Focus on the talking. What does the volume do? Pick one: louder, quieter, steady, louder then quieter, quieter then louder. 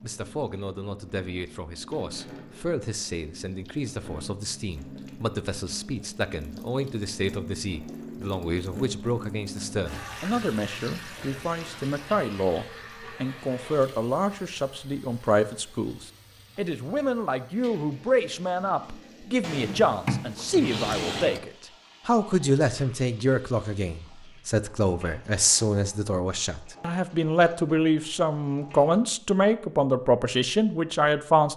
louder.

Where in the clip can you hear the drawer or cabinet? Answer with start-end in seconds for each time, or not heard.
19.4-21.4.